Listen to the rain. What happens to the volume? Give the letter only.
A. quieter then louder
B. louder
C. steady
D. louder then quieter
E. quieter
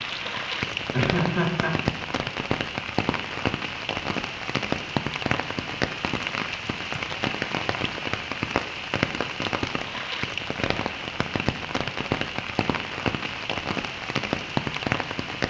C.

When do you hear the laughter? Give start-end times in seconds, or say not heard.
0.9-1.7.